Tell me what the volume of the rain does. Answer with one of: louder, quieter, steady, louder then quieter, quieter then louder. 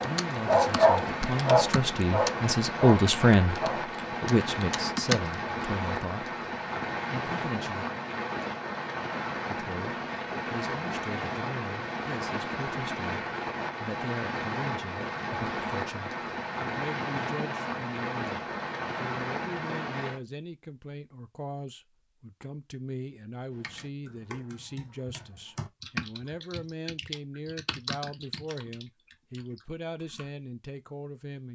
steady.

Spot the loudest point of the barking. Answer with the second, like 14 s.
1 s.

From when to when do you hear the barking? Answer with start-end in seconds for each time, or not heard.
0.0-4.0.